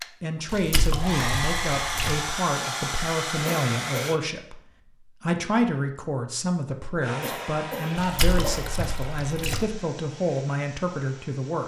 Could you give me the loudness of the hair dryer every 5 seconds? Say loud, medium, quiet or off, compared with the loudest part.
loud, medium, quiet.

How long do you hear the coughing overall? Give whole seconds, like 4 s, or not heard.
2 s.